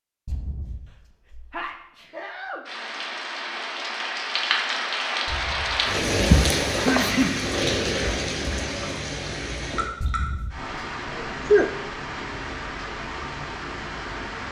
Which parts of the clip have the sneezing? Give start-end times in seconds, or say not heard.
1.5-2.6, 6.7-7.4, 11.1-11.7.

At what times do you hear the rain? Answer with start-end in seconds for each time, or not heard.
2.6-14.4.